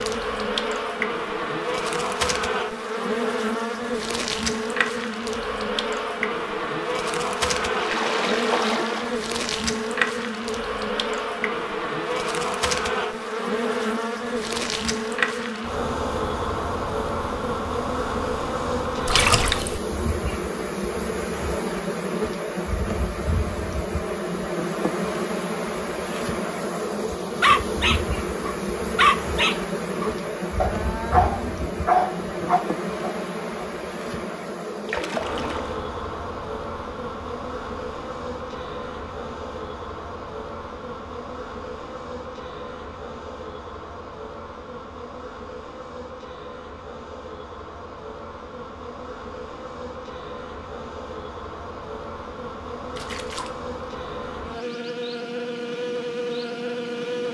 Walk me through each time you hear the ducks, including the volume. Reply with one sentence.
You can't hear the ducks here.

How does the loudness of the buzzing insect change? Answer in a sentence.
The loudness of the buzzing insect goes down.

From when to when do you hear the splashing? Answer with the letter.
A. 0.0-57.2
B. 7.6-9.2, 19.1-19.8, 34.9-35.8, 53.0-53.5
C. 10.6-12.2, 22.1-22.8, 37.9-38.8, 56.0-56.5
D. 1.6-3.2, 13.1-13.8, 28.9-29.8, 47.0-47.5
B.